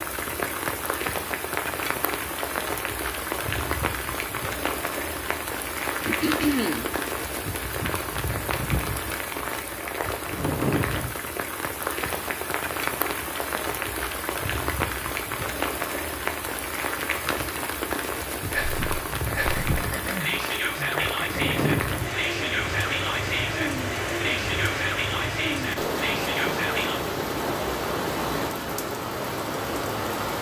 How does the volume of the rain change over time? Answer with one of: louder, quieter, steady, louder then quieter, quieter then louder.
steady.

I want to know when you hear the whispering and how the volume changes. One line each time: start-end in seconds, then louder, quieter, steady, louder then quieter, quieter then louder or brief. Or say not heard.
18.5-27.0 steady.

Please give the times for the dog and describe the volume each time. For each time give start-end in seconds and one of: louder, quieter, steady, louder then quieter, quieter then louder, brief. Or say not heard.
not heard.